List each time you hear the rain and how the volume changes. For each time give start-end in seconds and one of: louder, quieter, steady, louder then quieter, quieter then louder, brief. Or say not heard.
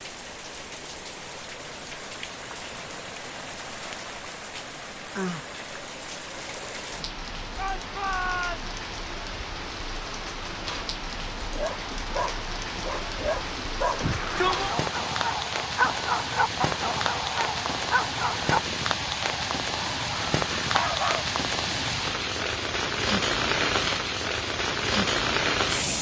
0.0-25.9 louder.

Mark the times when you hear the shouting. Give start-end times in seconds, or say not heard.
7.5-8.7, 14.0-14.8.